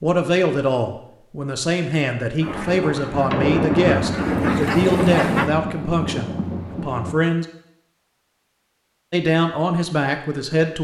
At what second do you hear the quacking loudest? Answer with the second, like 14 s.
5 s.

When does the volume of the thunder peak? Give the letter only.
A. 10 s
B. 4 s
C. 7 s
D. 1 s
B.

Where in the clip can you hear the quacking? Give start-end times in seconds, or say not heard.
2.4-5.5.